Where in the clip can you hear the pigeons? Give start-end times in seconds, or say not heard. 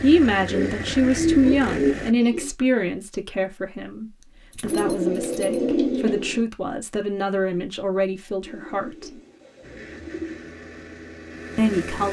0.5-2.5, 4.6-6.5, 8.4-10.4.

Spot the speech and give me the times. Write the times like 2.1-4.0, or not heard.
0.0-9.2, 11.6-12.0.